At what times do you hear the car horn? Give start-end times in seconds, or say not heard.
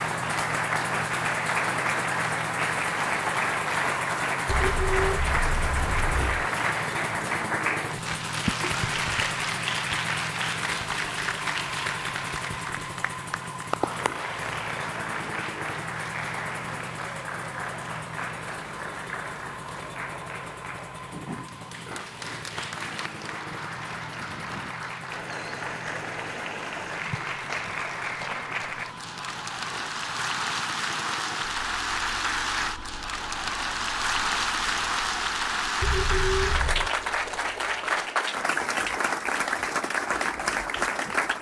4.5-6.5, 35.8-36.9.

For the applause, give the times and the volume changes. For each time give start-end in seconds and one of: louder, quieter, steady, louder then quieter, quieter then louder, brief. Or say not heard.
0.0-41.3 quieter then louder.